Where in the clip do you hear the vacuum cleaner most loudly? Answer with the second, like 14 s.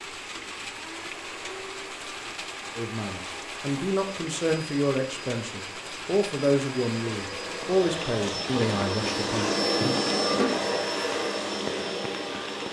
10 s.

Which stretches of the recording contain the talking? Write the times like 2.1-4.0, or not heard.
2.8-9.5.